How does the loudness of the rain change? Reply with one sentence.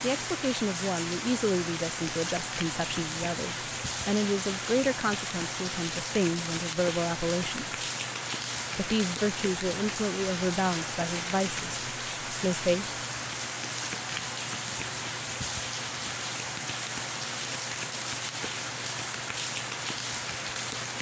The volume of the rain stays about the same.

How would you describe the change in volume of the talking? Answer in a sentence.
The loudness of the talking stays about the same.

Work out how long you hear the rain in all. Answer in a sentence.
You can hear the rain for 21 seconds altogether.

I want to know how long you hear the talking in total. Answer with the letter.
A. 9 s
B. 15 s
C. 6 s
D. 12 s
D.